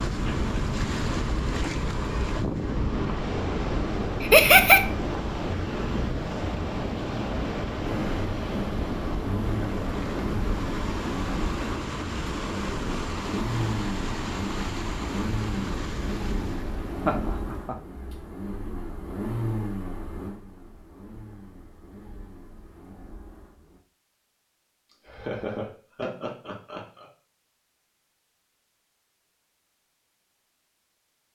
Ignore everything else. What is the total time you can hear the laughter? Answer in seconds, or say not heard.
3 s.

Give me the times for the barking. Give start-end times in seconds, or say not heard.
not heard.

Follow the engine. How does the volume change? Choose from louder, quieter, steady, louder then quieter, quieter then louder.
quieter.